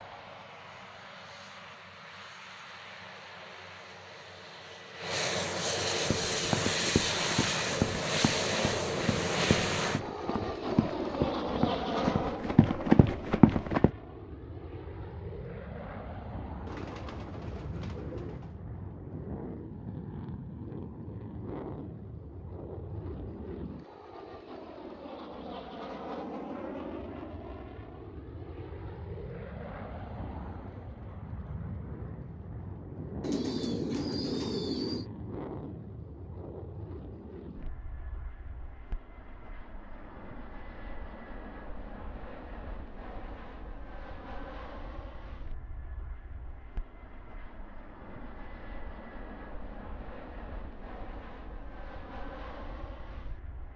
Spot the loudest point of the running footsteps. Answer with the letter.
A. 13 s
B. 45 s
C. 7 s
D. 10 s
A.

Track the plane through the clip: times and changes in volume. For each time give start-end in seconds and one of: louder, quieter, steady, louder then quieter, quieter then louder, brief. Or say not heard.
0.0-53.7 quieter.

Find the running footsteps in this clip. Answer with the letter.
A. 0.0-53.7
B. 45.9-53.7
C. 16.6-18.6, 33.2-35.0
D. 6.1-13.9
D.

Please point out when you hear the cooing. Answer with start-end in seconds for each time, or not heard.
16.6-18.6, 33.2-35.0.